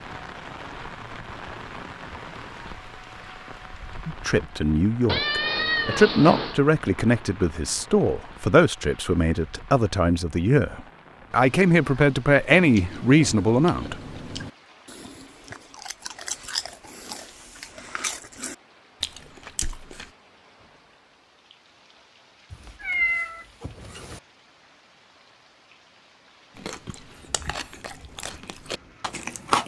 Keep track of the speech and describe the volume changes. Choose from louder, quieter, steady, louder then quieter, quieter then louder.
steady.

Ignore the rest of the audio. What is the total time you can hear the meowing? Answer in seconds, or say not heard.
3 s.